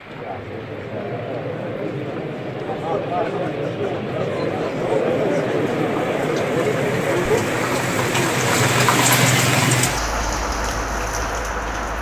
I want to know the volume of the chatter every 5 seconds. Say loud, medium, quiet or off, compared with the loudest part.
loud, loud, off.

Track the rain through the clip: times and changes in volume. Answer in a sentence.
You can hear the rain from 0.0 to 11.9 s, getting louder.